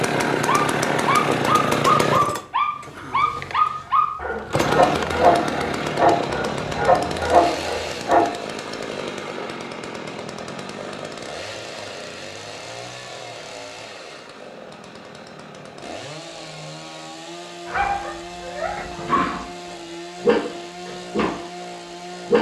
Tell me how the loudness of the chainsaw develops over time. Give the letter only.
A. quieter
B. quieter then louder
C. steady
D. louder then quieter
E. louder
A.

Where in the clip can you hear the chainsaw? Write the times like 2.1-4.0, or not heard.
0.0-22.3.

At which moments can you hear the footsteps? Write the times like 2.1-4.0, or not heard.
not heard.